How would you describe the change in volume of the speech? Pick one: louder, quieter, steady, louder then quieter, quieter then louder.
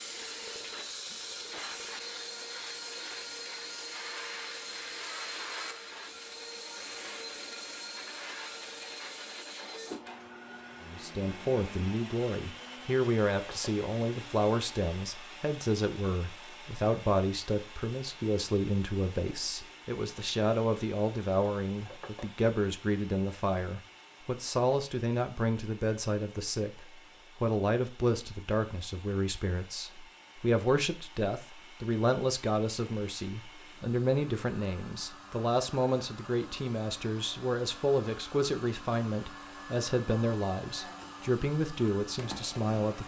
steady.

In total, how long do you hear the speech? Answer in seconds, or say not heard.
32 s.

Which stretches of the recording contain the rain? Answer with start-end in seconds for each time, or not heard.
not heard.